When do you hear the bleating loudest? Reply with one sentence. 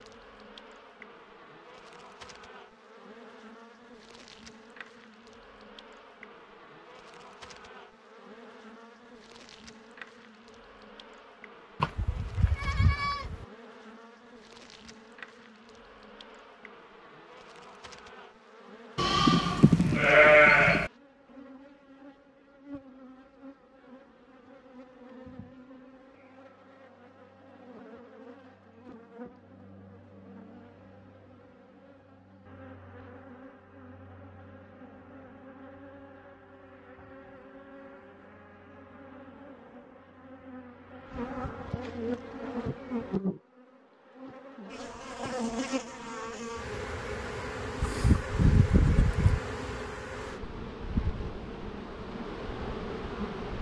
The volume of the bleating peaks at 20 seconds.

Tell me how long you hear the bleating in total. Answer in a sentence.
You can hear the bleating for 5 seconds altogether.